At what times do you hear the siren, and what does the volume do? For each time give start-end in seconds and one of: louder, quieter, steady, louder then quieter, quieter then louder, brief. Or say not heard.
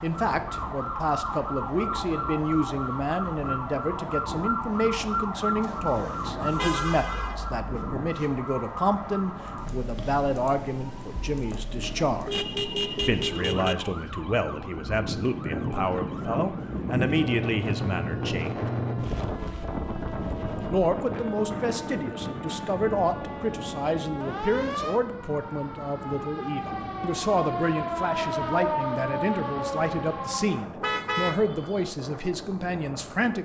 0.0-30.6 quieter then louder.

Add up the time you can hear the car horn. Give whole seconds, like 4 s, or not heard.
3 s.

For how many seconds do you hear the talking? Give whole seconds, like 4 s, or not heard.
31 s.